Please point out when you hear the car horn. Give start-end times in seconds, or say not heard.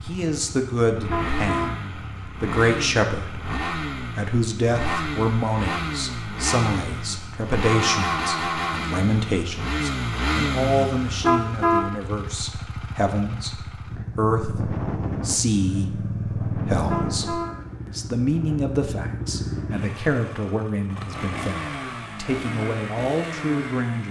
0.9-1.7, 11.1-11.8, 16.7-17.5.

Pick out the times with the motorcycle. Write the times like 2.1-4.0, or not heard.
0.0-24.0.